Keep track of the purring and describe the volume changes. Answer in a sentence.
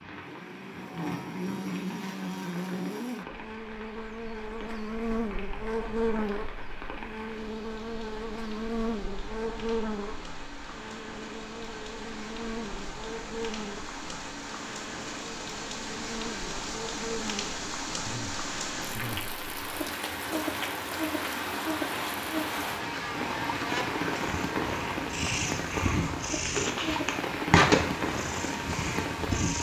The volume of the purring goes up, then down.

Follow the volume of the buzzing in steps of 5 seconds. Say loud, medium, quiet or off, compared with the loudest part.
loud, loud, medium, medium, loud, medium.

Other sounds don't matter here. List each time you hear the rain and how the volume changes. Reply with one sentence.
The rain can be heard from 0.0 to 29.5 s, getting louder.